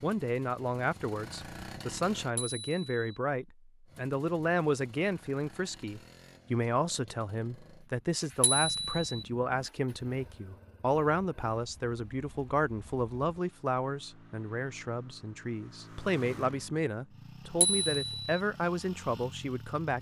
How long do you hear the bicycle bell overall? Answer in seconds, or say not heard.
2 s.